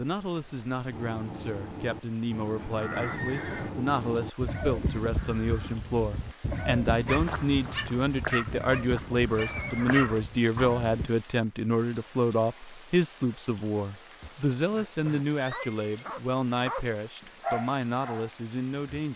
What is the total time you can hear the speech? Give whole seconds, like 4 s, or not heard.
19 s.